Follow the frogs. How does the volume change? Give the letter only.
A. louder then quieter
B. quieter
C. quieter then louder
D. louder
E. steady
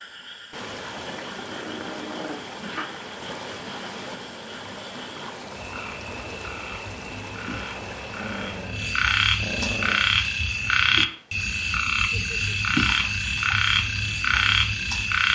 D.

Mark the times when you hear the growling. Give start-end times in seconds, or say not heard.
1.1-2.9, 8.2-10.1.